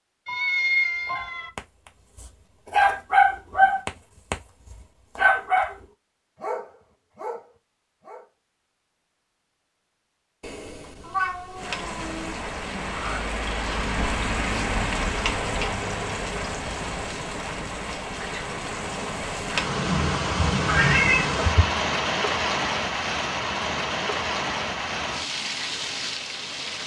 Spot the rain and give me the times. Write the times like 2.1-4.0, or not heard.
11.6-26.8.